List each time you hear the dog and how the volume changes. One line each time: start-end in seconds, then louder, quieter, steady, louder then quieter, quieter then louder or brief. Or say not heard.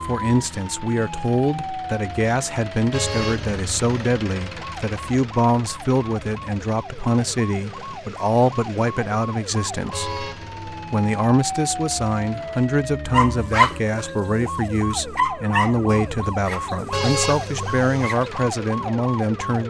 13.1-18.3 quieter.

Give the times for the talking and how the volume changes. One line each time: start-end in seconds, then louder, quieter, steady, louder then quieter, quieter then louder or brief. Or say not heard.
0.0-10.2 steady
10.9-19.6 steady.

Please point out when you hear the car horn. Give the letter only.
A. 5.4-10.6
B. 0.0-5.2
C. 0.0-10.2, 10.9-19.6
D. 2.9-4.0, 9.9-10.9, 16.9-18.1
D.